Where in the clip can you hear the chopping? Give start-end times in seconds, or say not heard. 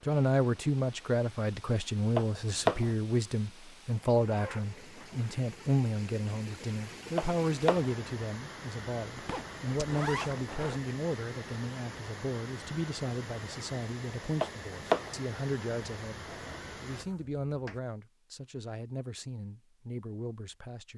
2.1-2.9, 7.2-8.0, 14.4-15.2.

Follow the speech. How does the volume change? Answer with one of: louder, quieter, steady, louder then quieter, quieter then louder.
quieter.